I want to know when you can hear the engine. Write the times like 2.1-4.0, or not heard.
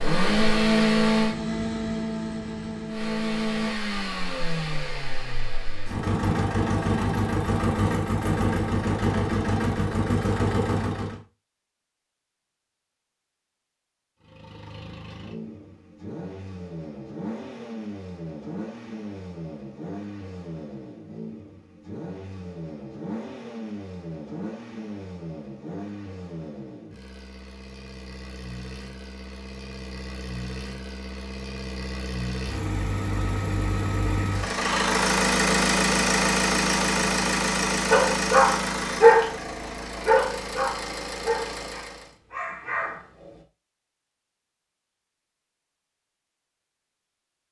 0.0-11.2, 14.2-42.1.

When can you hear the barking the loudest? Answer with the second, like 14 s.
39 s.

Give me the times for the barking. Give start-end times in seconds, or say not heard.
37.9-39.3, 40.0-43.3.